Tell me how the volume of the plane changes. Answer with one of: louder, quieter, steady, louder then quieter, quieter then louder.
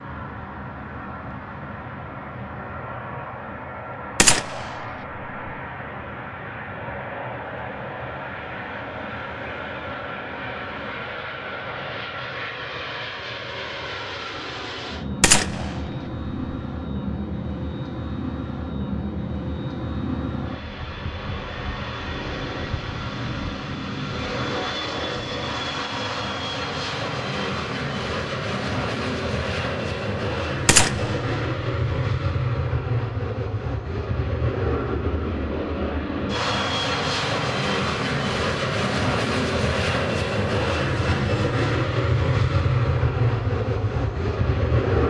louder.